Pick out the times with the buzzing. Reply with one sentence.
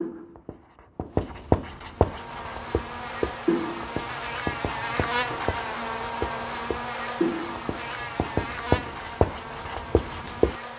The buzzing can be heard from 1.8 to 10.7 s.